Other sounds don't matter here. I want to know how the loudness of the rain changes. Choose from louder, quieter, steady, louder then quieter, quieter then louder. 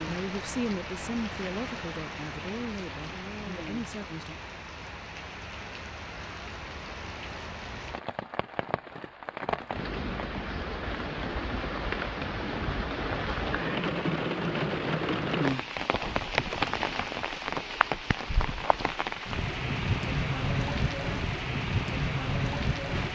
louder.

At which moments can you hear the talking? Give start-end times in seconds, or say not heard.
0.1-4.3.